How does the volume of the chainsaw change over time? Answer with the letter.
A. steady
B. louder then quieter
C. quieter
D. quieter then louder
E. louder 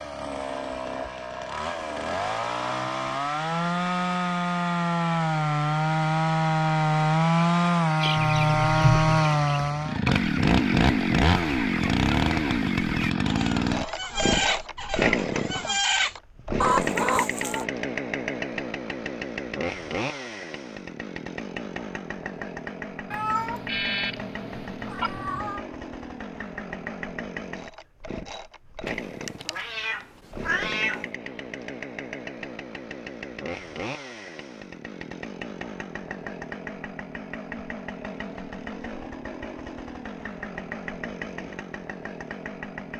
C.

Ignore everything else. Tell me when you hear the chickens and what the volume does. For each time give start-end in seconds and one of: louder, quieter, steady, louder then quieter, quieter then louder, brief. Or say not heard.
8.0-17.6 louder.